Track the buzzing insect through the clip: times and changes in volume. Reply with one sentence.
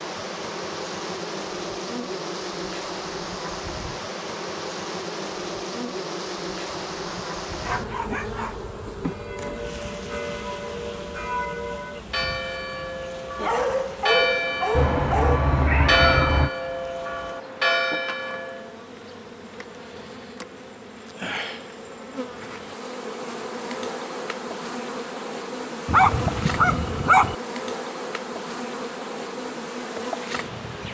The buzzing insect can be heard from 0.0 to 30.8 s, getting quieter then louder.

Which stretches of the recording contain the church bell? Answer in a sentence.
You can hear the church bell from 9.0 to 18.8 s.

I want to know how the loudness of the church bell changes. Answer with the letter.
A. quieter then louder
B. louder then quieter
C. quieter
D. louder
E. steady
D.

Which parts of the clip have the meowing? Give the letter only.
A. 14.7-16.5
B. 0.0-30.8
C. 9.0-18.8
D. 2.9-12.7
A.